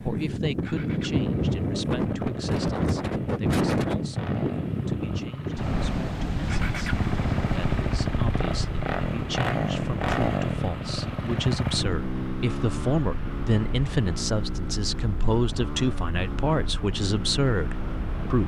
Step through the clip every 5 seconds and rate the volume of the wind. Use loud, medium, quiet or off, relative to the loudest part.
loud, medium, quiet, quiet.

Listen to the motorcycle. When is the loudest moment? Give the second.
10 s.